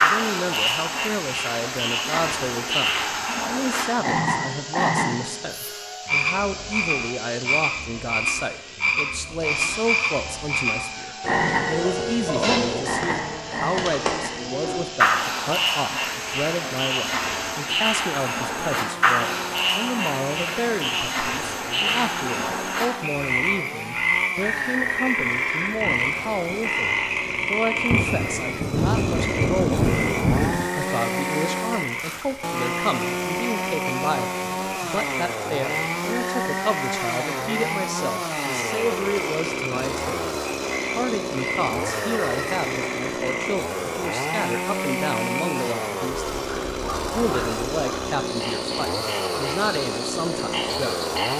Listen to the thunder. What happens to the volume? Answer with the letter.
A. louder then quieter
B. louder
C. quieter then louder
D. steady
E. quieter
B.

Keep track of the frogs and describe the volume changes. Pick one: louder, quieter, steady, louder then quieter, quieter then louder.
quieter.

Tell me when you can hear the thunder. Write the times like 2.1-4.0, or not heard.
25.8-30.7.